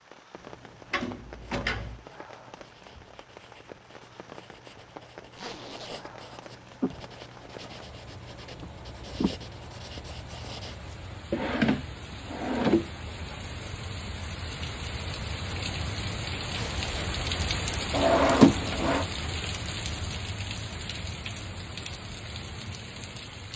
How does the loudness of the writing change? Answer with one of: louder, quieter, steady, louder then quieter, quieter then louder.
louder.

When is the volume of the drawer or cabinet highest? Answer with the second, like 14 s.
18 s.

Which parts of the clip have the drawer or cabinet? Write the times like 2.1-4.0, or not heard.
0.9-2.0, 11.3-12.9, 17.9-19.1.